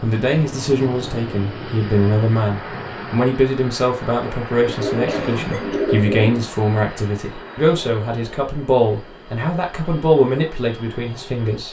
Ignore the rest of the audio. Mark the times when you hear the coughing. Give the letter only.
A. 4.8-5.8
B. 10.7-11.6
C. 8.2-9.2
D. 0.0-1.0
A.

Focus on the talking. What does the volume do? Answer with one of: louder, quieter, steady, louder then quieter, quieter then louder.
steady.